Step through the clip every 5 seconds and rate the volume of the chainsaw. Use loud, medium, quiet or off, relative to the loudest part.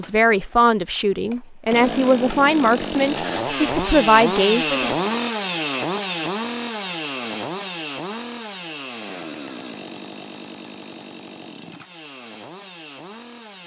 loud, loud, quiet.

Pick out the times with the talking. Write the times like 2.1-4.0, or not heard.
0.0-5.0.